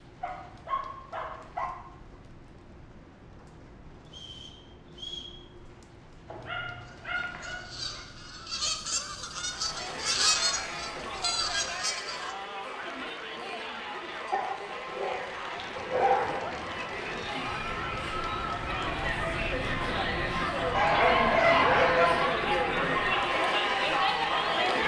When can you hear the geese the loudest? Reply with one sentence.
The volume of the geese peaks at 10 seconds.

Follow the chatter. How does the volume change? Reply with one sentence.
The loudness of the chatter goes up.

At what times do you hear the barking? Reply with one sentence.
The barking can be heard from 0.2 to 1.6 s, from 6.2 to 8.1 s, from 14.3 to 16.4 s and from 20.7 to 22.4 s.